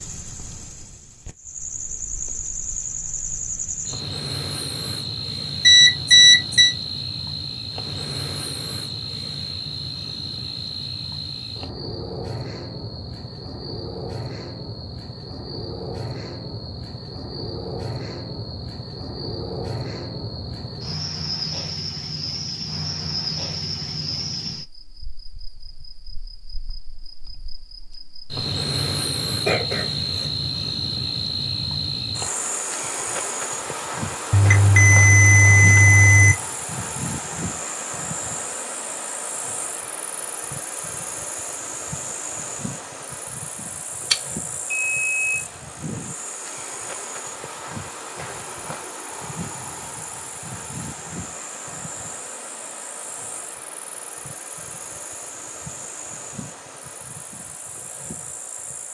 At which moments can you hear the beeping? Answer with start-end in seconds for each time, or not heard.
5.7-6.8, 34.3-36.4, 44.1-45.4.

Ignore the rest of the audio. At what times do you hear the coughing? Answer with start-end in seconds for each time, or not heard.
29.4-30.3.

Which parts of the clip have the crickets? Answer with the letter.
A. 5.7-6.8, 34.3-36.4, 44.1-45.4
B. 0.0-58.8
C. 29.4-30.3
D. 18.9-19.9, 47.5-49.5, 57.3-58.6
B.